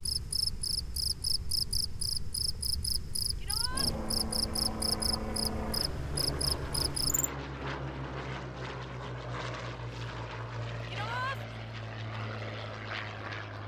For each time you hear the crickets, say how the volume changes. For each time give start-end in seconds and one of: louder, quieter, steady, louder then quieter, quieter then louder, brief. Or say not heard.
0.0-7.3 steady.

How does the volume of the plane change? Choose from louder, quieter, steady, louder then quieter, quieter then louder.
steady.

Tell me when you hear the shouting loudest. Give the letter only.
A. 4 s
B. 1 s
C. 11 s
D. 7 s
C.